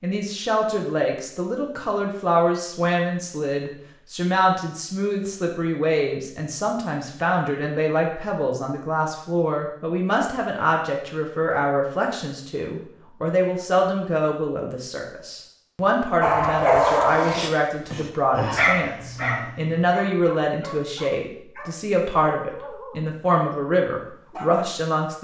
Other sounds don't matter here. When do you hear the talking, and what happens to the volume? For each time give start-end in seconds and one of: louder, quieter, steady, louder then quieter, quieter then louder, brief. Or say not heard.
0.0-25.1 steady.